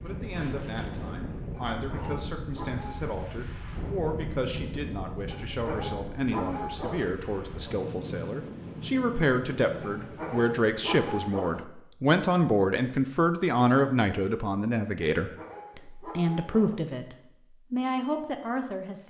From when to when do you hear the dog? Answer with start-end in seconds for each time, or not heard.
1.5-3.1, 5.3-7.2, 9.8-11.7, 15.2-16.9.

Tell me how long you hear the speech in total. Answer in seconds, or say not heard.
19 s.